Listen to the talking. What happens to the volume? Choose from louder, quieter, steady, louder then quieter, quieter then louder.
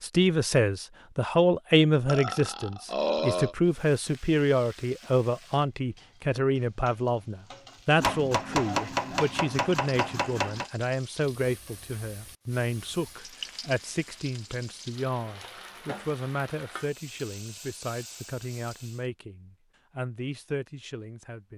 quieter.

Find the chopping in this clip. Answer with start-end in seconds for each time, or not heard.
8.0-10.7.